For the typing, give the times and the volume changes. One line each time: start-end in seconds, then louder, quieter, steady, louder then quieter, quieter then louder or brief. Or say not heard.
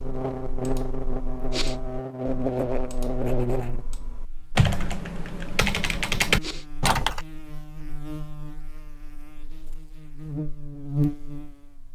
0.0-7.2 louder.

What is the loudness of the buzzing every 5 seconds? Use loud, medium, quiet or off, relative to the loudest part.
loud, quiet, loud.